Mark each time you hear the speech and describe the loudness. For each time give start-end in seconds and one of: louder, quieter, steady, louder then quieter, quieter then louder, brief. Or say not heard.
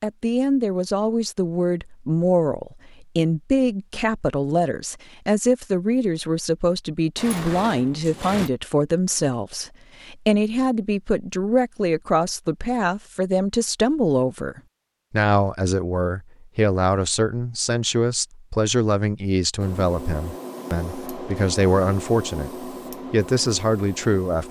0.0-24.4 steady.